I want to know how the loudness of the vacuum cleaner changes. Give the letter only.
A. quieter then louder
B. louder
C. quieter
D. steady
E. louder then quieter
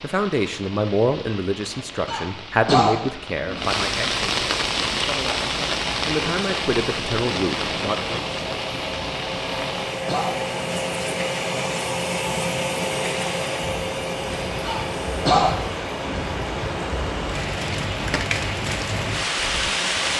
E.